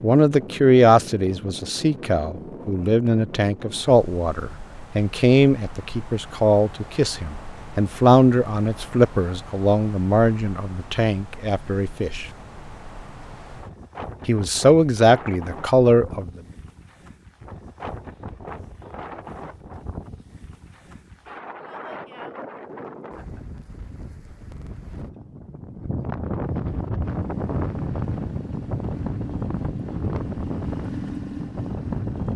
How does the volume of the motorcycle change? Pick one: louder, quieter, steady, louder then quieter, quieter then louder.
louder.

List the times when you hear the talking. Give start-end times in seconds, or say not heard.
0.0-12.2, 14.2-16.3.